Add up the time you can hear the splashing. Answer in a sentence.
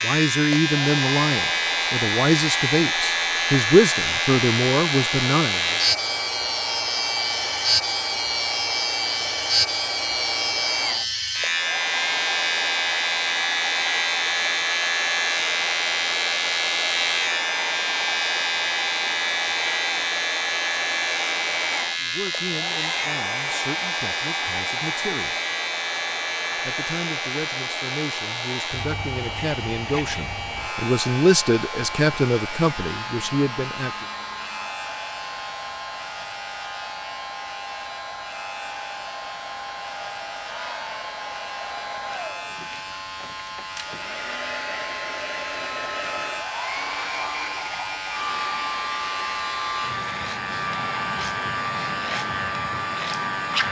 You can't hear the splashing here.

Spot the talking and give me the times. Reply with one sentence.
You can hear the talking from 0.0 to 5.8 s, from 22.0 to 25.4 s and from 26.6 to 34.0 s.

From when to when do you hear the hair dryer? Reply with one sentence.
The hair dryer can be heard from 0.0 to 53.6 s.